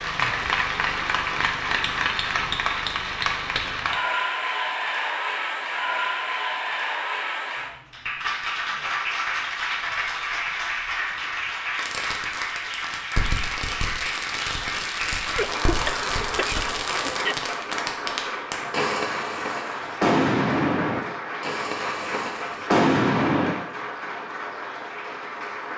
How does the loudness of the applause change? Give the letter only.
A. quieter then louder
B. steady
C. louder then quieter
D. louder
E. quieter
E.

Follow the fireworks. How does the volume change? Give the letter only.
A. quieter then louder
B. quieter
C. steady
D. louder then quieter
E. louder
E.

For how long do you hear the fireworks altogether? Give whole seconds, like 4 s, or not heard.
12 s.